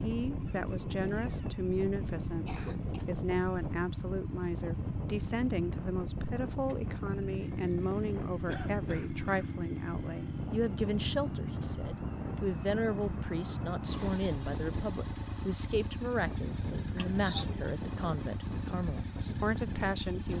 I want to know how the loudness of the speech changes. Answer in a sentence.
The volume of the speech stays about the same.